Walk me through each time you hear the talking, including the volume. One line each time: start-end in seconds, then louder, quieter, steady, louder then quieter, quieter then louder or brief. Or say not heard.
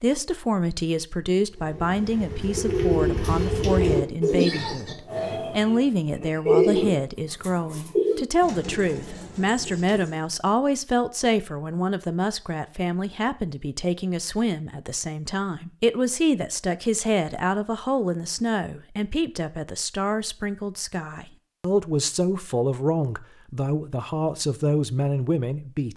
0.0-25.9 steady.